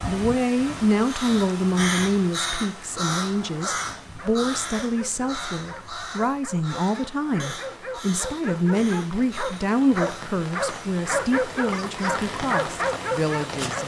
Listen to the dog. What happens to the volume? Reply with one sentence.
The loudness of the dog goes up.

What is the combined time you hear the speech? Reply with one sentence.
The speech can be heard for 14 seconds in total.